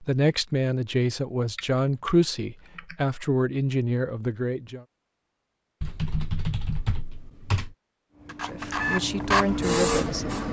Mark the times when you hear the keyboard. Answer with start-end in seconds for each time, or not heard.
1.6-3.0, 5.8-7.8.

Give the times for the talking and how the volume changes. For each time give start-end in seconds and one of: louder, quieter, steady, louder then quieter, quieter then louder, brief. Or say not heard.
0.0-4.8 steady
8.4-10.4 brief.